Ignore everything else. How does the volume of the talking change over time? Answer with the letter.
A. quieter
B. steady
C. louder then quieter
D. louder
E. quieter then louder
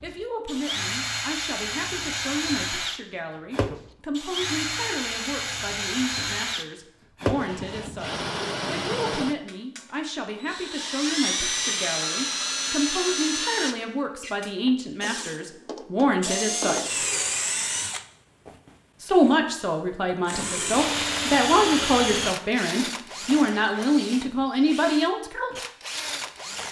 D.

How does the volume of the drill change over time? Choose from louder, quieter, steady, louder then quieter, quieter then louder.
steady.